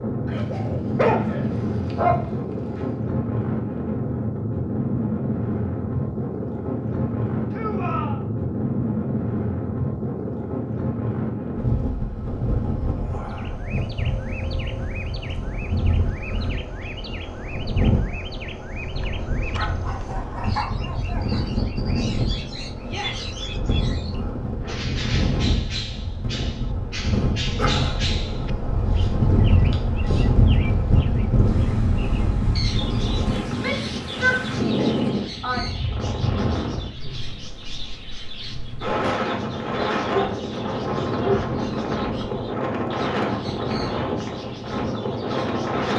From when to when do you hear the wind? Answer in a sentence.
You can hear the wind from 0.0 to 45.9 s.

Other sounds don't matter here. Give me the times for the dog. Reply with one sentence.
You can hear the dog from 0.2 to 2.2 s, from 19.6 to 21.4 s and from 40.0 to 41.5 s.